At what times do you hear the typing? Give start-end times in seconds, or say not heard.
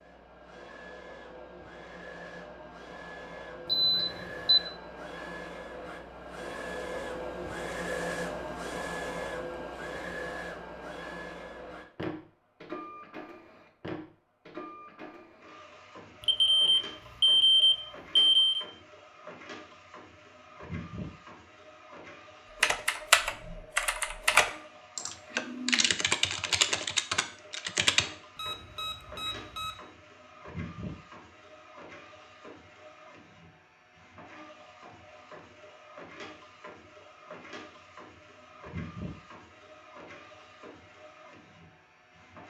22.6-28.1.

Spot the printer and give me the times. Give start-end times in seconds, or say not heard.
0.0-42.4.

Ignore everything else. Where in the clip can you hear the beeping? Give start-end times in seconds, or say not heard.
3.6-4.6, 16.2-18.6, 28.4-29.8.